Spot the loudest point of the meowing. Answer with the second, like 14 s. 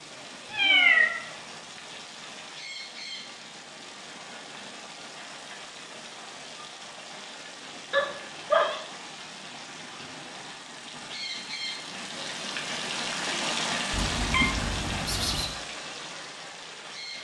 1 s.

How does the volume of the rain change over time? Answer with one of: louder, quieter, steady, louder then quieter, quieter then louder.
louder.